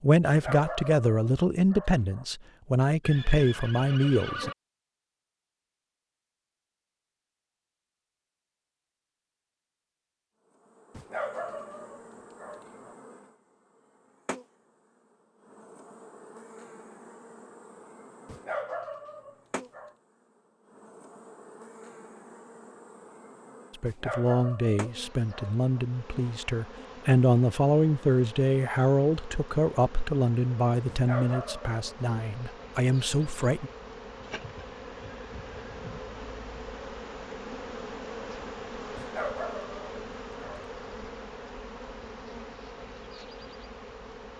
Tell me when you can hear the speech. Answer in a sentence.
The speech can be heard from 0.0 to 4.5 s and from 23.8 to 33.7 s.